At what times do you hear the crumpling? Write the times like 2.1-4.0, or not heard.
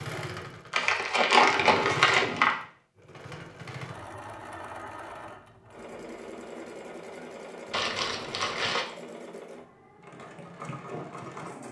0.7-2.5, 7.7-8.8.